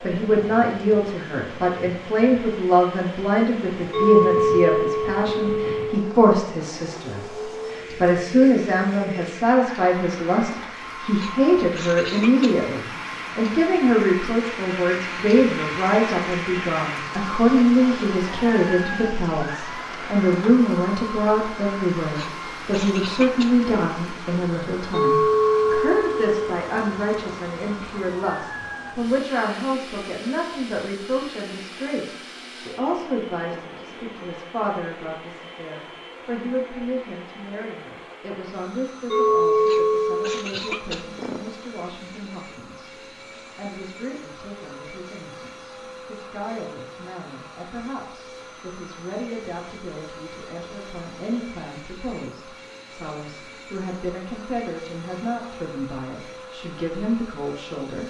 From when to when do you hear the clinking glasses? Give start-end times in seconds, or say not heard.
3.9-6.2, 24.9-26.6, 39.1-40.4.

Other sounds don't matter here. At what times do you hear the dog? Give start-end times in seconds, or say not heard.
not heard.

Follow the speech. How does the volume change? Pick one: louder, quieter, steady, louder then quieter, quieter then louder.
quieter.